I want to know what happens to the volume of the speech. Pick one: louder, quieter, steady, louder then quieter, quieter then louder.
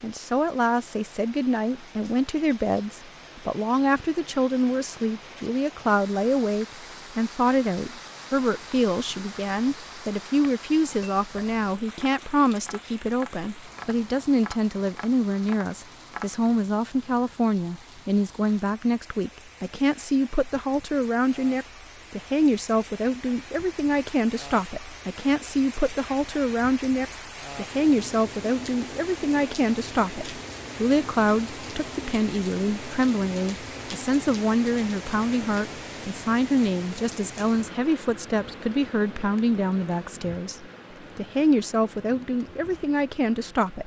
steady.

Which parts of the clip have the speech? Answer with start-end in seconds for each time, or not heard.
0.0-43.8.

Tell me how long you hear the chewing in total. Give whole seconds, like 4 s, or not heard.
not heard.